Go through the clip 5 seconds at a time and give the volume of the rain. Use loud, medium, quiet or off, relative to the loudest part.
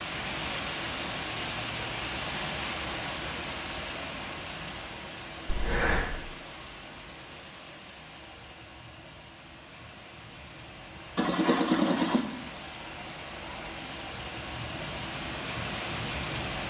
loud, medium, medium, loud.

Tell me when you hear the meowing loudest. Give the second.
12 s.